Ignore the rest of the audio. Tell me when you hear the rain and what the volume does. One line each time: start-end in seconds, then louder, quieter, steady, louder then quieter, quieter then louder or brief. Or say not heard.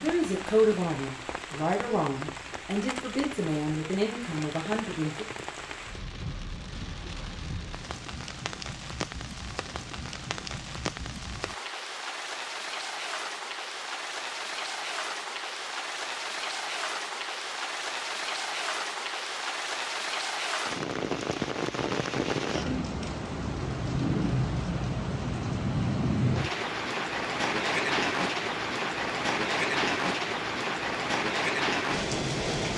0.0-32.7 louder.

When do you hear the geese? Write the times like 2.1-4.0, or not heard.
not heard.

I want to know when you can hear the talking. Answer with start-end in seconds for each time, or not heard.
0.0-5.2.